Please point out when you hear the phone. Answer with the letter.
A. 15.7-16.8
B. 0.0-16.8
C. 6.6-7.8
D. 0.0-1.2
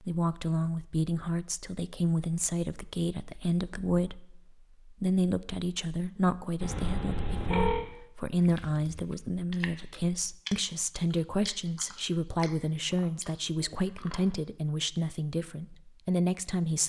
C.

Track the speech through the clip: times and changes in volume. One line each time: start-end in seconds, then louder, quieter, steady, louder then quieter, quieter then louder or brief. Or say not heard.
0.0-16.8 steady.